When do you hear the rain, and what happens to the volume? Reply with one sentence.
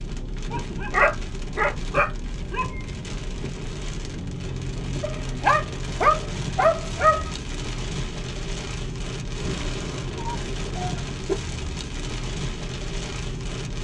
The rain can be heard from 0.0 to 13.7 s, at a steady volume.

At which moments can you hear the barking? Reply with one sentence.
You can hear the barking from 0.5 to 2.8 s, from 5.0 to 7.3 s and from 9.3 to 11.3 s.